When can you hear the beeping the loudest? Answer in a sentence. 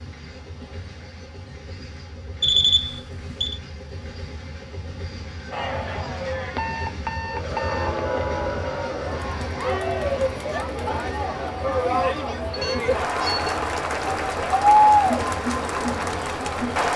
The volume of the beeping peaks at 3 seconds.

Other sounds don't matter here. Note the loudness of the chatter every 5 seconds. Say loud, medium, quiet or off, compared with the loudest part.
off, medium, loud, loud.